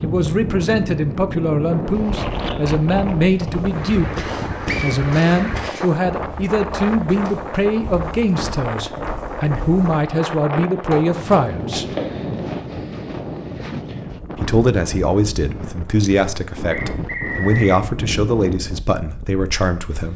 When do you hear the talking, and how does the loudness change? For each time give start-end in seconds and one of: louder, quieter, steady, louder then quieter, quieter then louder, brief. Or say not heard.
0.0-11.8 steady
14.3-20.1 steady.